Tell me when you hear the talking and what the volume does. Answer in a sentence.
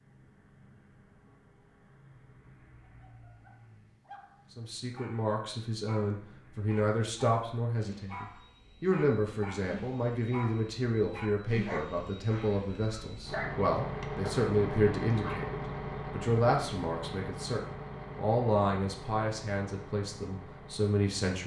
You can hear the talking from 4.5 to 21.4 s, at a steady volume.